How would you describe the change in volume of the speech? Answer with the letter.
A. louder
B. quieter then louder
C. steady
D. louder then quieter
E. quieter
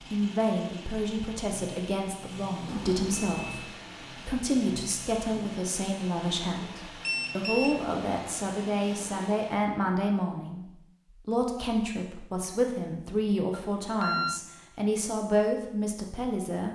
C.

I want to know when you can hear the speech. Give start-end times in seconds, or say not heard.
0.0-16.6.